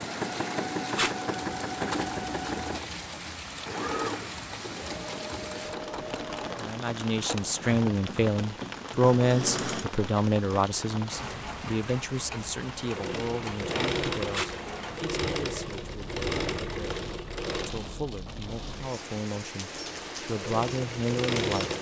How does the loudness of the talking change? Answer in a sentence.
The loudness of the talking goes down, then up.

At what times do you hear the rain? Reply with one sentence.
The rain can be heard from 0.0 to 21.7 s.